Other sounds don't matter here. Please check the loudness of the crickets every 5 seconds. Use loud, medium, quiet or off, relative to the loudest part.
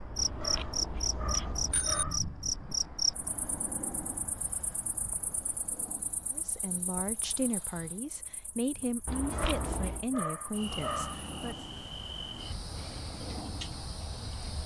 loud, quiet, medium.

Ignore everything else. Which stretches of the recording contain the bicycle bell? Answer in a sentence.
You can hear the bicycle bell from 0.1 to 2.0 s and from 9.1 to 10.1 s.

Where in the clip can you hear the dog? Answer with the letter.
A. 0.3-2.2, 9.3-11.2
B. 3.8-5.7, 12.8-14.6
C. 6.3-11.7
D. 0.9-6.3
A.